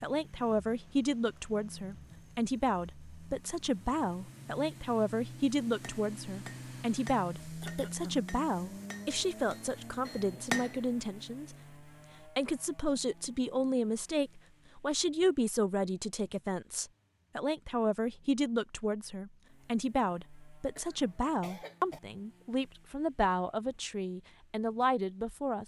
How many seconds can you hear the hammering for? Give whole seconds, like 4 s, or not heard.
5 s.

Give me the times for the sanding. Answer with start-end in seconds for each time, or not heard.
not heard.